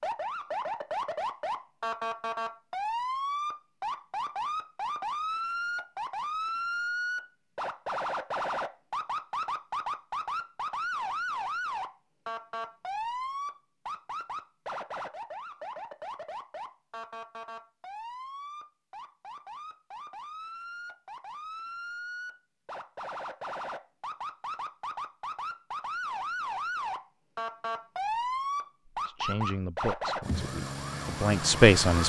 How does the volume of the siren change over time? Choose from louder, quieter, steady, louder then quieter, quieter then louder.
quieter then louder.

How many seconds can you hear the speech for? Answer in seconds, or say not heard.
3 s.